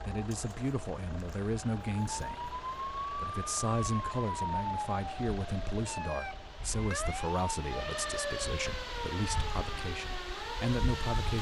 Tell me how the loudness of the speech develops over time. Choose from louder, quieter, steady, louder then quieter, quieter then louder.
steady.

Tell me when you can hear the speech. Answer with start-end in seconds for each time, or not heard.
0.0-11.3.